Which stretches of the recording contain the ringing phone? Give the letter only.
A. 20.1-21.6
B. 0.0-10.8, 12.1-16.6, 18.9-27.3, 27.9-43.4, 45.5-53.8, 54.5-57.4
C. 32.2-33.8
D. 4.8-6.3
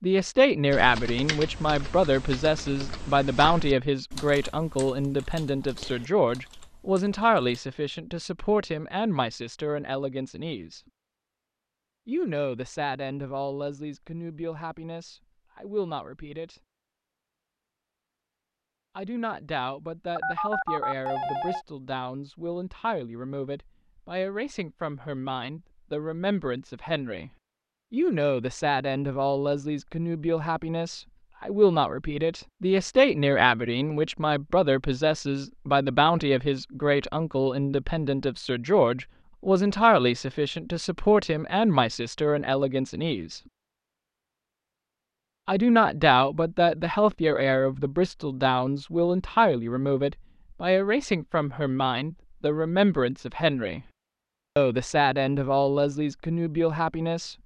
A.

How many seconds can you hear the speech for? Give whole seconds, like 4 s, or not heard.
50 s.